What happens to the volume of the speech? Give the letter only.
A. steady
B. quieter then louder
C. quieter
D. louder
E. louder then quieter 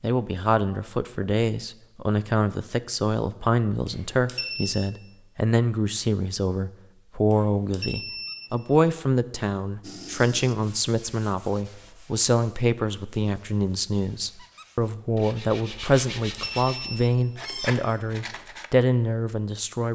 A.